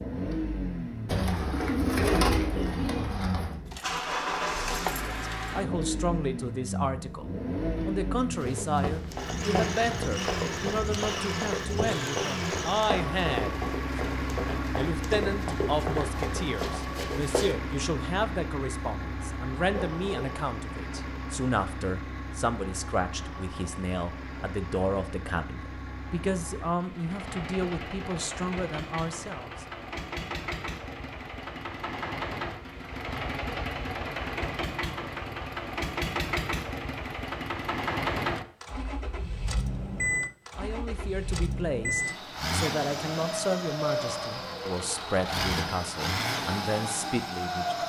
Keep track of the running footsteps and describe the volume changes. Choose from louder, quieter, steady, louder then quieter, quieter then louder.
steady.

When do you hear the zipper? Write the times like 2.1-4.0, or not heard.
19.8-20.3.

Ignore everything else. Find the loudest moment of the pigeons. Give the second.
2 s.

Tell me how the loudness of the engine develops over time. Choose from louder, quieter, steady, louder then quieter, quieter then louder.
quieter then louder.